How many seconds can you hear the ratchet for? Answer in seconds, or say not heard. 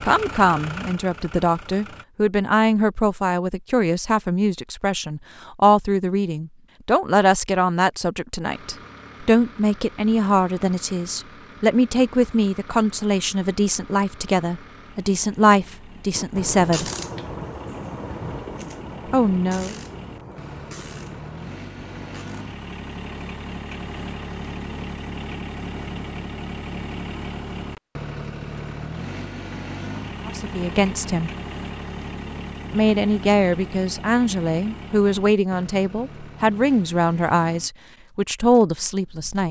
6 s.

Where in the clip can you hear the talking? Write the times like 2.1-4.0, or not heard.
0.0-16.9, 19.1-19.8, 30.2-31.3, 32.7-39.4.